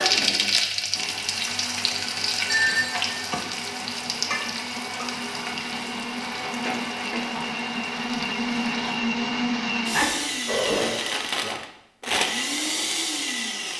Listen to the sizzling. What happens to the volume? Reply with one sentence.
The volume of the sizzling goes down.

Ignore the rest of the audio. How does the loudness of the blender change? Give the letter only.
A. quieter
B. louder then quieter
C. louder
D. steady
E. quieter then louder
C.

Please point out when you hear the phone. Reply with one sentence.
The phone can be heard from 2.5 to 3.4 s and from 9.9 to 11.0 s.